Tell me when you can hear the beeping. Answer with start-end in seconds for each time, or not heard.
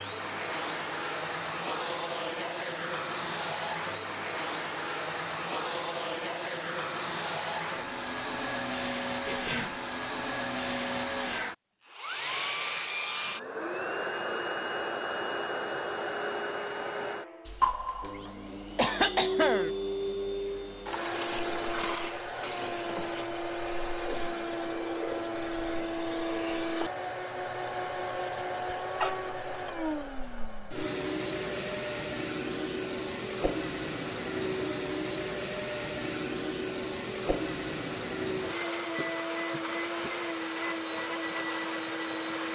not heard.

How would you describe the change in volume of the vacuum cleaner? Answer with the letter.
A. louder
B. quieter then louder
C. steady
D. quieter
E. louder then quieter
C.